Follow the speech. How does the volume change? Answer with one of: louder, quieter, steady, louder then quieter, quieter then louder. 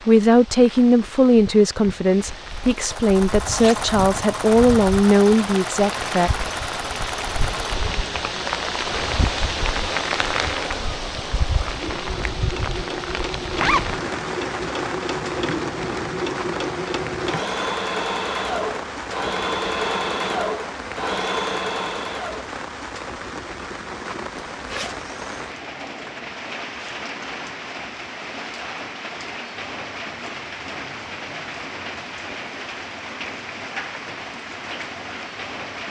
steady.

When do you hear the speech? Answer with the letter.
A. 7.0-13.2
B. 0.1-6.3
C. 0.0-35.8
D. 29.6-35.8
B.